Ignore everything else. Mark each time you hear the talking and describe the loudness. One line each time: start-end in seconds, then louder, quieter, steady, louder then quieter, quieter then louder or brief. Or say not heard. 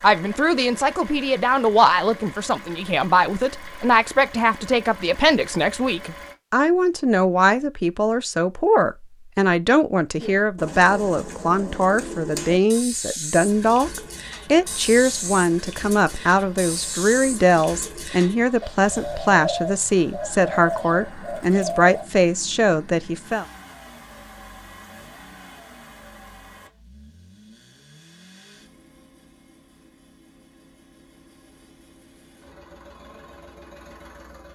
0.0-23.4 steady.